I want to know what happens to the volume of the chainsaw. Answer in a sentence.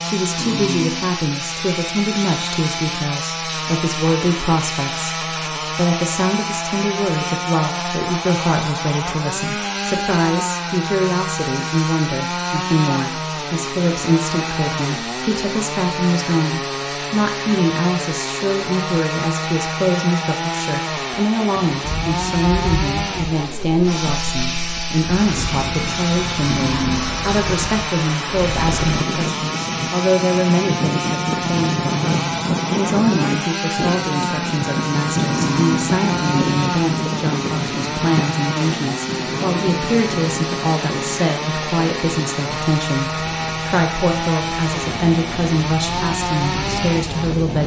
The loudness of the chainsaw stays about the same.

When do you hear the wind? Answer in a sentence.
You can hear the wind from 21.7 to 47.6 s.